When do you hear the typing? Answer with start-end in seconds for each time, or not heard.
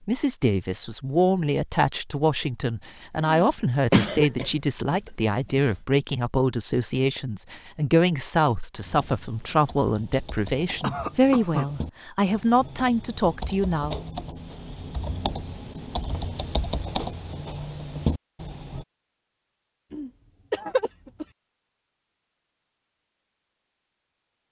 8.8-18.9.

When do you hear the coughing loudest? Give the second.
4 s.